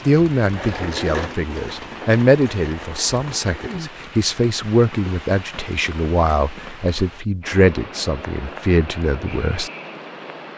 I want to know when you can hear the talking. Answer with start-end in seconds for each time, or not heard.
0.1-9.7.